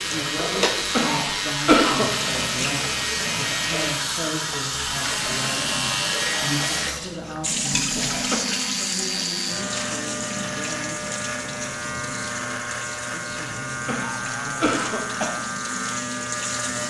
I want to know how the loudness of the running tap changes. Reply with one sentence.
The loudness of the running tap goes down.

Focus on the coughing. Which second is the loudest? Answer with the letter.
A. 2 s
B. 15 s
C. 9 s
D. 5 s
A.